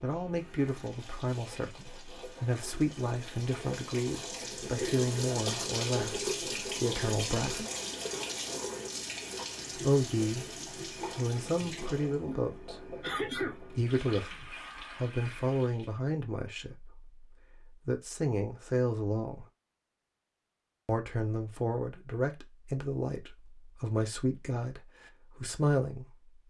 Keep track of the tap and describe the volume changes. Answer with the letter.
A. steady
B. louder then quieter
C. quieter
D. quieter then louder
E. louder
B.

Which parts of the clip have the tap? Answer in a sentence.
You can hear the tap from 0.0 to 15.9 s.